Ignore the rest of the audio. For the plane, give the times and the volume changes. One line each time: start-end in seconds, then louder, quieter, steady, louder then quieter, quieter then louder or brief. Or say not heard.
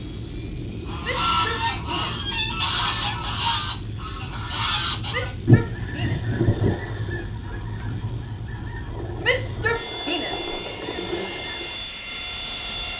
0.0-12.9 steady.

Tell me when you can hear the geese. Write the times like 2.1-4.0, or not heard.
0.8-11.8.